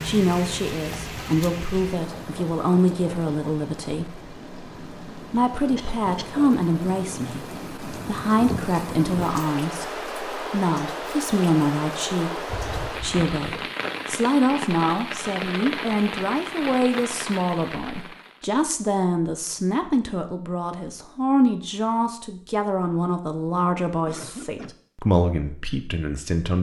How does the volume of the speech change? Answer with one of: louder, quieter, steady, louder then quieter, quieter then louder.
steady.